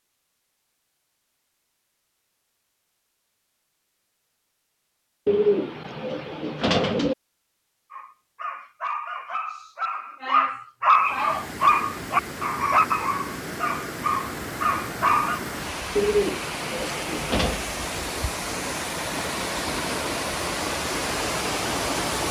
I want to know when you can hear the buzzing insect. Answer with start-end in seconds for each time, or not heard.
not heard.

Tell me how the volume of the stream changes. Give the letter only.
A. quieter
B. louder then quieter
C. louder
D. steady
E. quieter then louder
C.